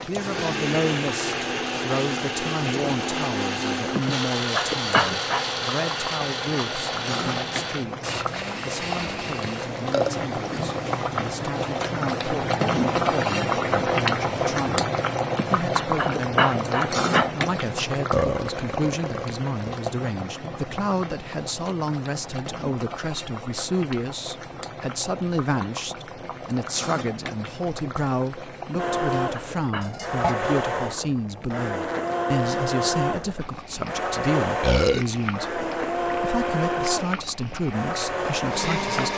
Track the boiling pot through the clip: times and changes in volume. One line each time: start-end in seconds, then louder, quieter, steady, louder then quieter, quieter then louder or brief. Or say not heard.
0.0-39.1 louder then quieter.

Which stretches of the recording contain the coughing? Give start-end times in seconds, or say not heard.
4.0-5.5, 15.3-17.3, 28.7-29.9.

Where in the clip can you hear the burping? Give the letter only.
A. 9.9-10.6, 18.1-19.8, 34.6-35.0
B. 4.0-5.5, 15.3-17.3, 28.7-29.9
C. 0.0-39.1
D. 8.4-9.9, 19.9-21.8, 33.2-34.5
A.